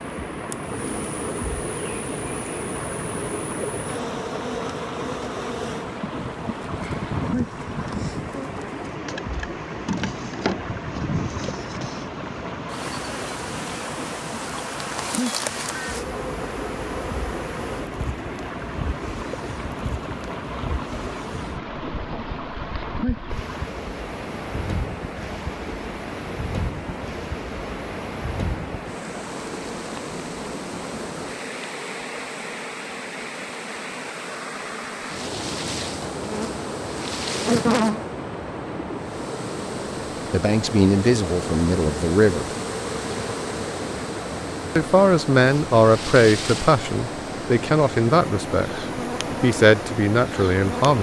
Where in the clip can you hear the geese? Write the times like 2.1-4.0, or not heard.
not heard.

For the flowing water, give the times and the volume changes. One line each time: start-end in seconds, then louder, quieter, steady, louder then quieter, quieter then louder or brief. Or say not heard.
0.0-50.9 steady.